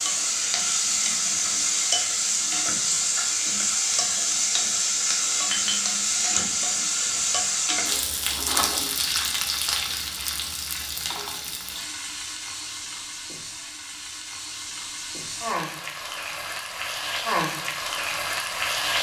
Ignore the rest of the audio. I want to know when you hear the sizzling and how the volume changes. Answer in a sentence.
You can hear the sizzling from 0.0 to 18.9 s, getting quieter then louder.